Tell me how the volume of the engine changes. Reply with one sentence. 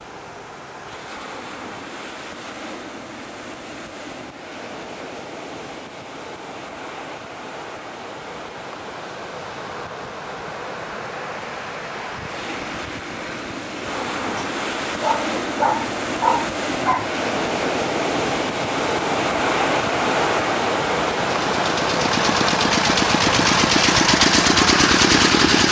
The volume of the engine goes up.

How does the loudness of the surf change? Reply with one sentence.
The loudness of the surf goes up.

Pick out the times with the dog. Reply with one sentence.
You can hear the dog from 14.3 to 17.1 s.